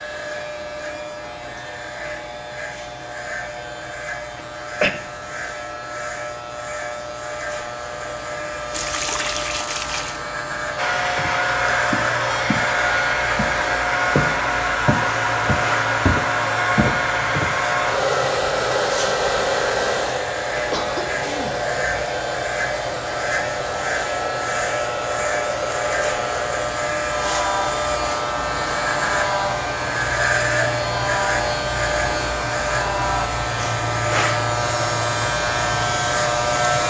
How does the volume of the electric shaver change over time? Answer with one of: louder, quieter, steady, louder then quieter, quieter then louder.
louder.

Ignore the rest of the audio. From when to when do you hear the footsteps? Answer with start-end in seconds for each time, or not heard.
10.7-12.7, 13.3-17.6.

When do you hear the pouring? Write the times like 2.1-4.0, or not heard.
8.7-10.2.